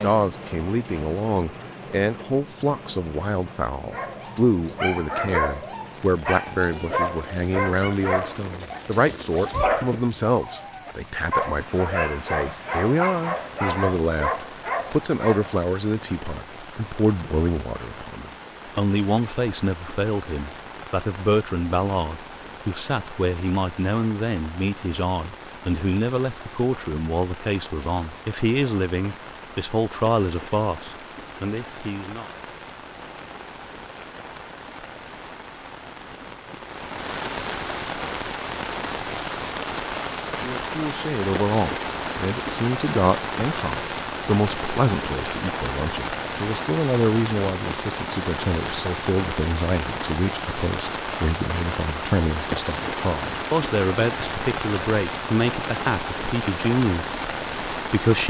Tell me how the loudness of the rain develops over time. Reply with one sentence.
The volume of the rain goes up.